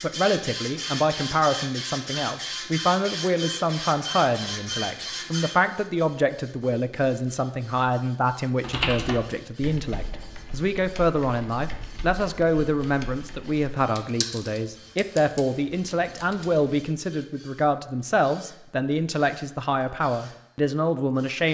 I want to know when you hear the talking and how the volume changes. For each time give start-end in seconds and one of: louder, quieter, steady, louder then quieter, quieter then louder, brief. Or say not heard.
0.0-21.5 steady.